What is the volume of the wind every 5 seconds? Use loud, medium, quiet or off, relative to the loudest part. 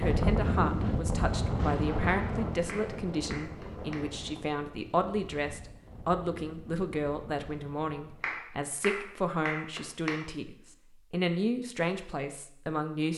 loud, quiet, off.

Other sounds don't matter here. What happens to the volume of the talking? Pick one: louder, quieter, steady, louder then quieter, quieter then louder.
steady.